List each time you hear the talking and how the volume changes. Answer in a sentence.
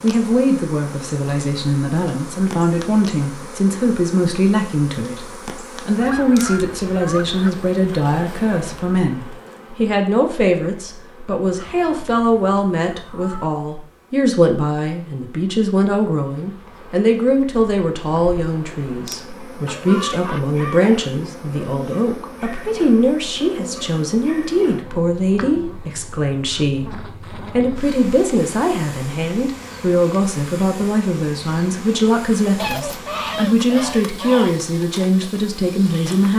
The talking can be heard from 0.0 to 5.2 s, at a steady volume; and from 5.8 to 36.3 s, at a steady volume.